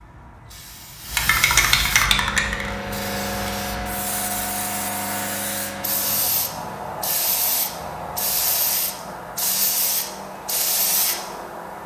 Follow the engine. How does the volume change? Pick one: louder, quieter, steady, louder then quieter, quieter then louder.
steady.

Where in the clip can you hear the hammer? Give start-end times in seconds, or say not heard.
not heard.